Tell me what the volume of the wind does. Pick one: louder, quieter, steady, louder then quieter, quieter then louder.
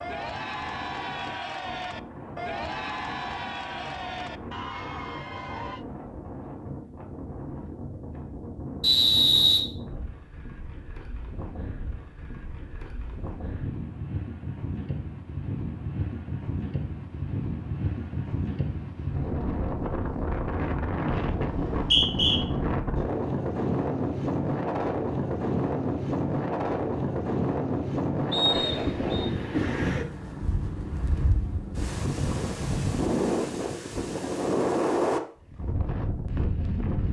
louder.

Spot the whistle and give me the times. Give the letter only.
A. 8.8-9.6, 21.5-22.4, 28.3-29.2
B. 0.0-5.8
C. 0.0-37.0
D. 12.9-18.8
A.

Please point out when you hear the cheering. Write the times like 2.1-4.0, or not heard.
0.0-5.8.